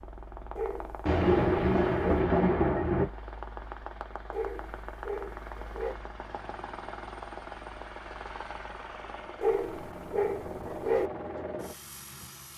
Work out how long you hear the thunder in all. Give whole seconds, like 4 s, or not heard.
2 s.